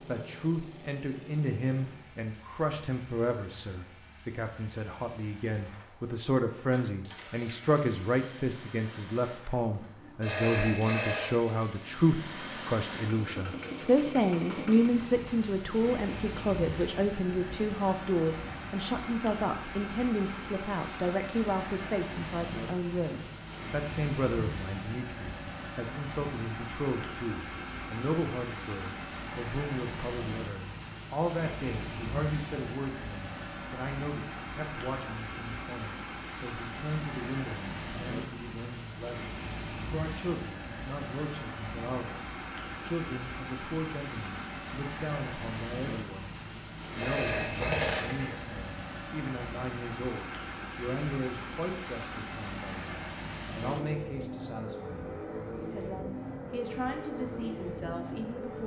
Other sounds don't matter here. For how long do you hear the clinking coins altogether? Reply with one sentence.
The clinking coins can be heard for 2 seconds in total.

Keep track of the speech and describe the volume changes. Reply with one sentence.
The loudness of the speech goes down.